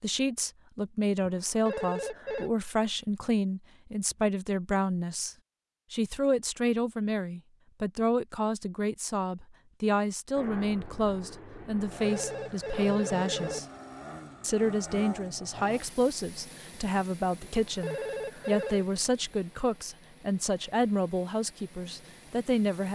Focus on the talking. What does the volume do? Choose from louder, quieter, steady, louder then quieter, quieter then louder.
steady.